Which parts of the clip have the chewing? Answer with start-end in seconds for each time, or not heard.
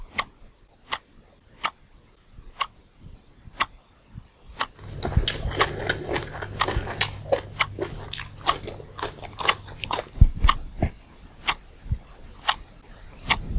4.8-10.1.